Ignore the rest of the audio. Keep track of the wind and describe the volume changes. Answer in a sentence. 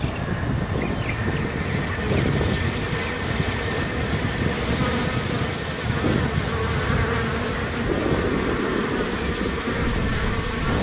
The loudness of the wind stays about the same.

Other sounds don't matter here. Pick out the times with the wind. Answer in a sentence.
You can hear the wind from 0.0 to 10.7 s.